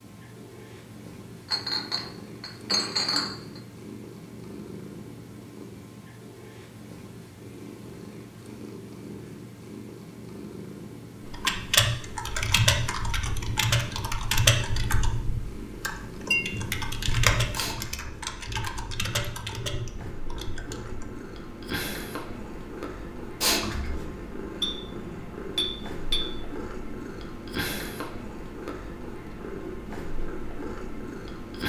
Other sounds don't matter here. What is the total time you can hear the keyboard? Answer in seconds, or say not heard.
10 s.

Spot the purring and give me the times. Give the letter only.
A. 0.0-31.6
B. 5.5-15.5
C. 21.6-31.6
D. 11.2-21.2
A.